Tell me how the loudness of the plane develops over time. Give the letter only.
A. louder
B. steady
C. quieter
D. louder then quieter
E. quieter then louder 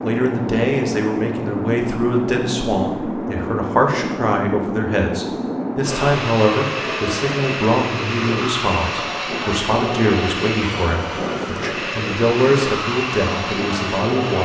B.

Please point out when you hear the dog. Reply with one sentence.
You can't hear the dog here.